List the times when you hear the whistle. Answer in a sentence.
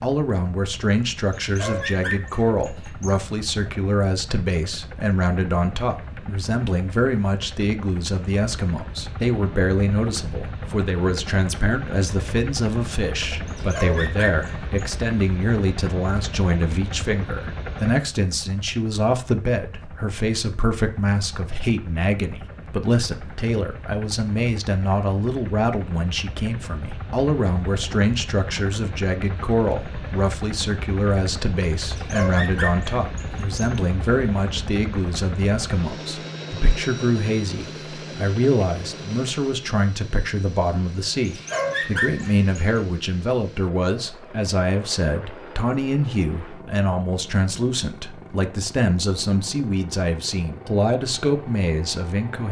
The whistle can't be heard in this clip.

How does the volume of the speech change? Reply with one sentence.
The loudness of the speech stays about the same.